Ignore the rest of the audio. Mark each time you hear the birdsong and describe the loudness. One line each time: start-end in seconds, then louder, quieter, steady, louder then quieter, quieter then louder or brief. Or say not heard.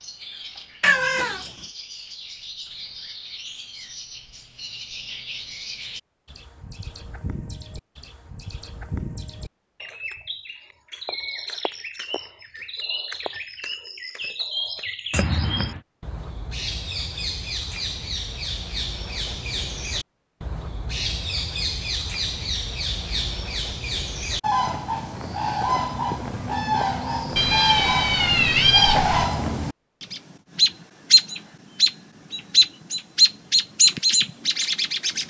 0.0-35.2 louder.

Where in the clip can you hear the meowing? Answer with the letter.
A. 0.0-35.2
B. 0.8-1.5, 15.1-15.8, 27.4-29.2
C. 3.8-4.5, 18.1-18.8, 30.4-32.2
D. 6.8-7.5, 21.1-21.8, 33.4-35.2
B.